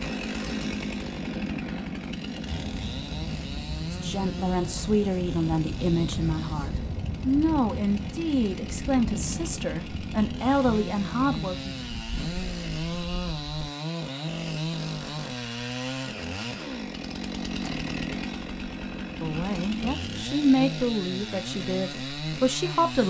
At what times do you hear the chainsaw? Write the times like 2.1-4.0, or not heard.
0.0-23.0.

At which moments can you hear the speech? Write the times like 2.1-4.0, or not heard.
3.9-11.8, 19.2-23.0.